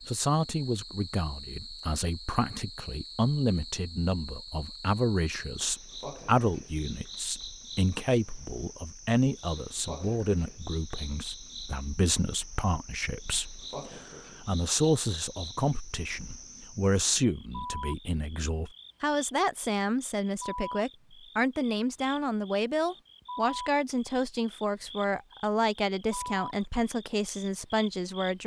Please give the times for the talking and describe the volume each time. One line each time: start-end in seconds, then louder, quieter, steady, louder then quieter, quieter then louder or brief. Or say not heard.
0.1-28.4 steady.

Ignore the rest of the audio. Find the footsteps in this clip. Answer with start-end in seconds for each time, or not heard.
not heard.